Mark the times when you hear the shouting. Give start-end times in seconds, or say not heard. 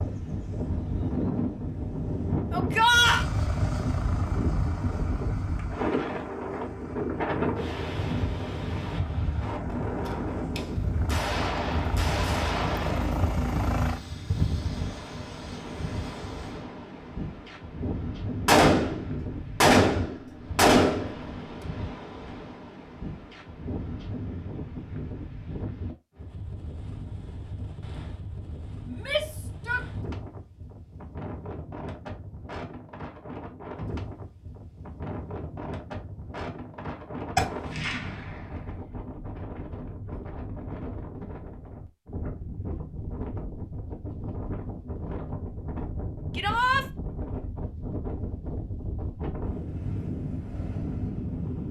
2.5-3.2, 28.9-29.9, 46.4-46.9.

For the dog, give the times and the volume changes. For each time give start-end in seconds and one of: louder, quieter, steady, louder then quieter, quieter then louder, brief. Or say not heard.
not heard.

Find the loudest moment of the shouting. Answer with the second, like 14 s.
3 s.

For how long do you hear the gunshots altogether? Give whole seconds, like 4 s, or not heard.
7 s.